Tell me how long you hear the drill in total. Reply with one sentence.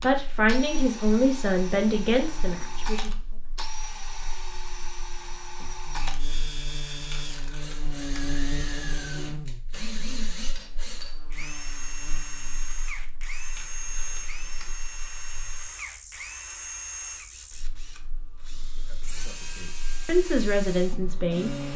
You can hear the drill for 22 seconds altogether.